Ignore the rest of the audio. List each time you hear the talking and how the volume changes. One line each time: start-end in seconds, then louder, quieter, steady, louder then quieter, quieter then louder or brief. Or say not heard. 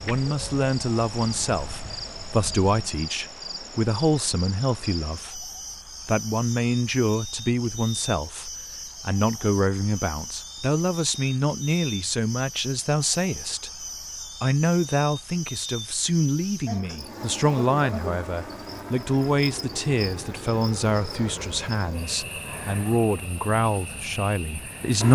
0.1-25.0 steady.